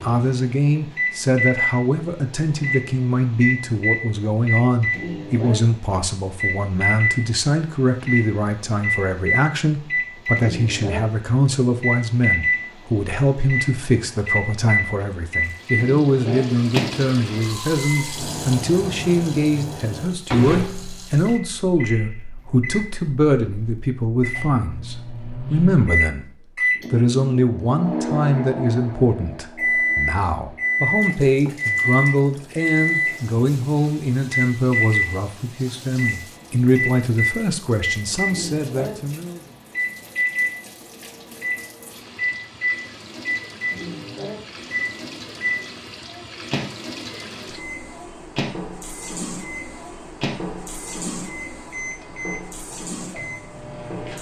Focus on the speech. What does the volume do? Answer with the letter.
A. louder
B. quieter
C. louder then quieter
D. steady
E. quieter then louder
D.